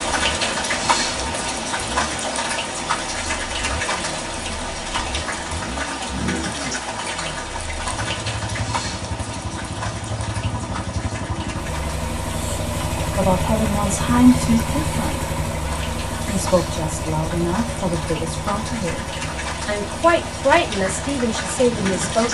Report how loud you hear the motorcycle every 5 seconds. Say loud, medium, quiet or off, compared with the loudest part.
medium, medium, loud, loud, medium.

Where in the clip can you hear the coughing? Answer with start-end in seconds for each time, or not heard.
not heard.